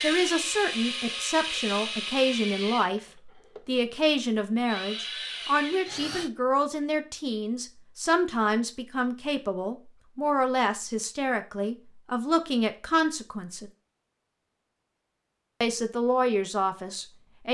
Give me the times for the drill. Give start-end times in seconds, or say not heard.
0.0-6.3.